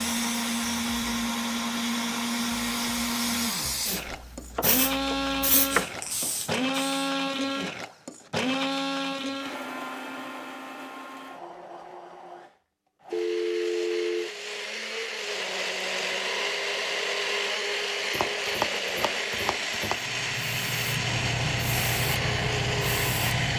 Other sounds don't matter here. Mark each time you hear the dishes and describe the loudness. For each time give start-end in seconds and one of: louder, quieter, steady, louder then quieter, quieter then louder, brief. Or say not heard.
not heard.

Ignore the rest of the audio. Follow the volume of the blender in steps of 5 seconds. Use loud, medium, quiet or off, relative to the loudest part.
loud, loud, medium, loud, loud.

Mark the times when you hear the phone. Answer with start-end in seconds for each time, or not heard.
13.1-14.3.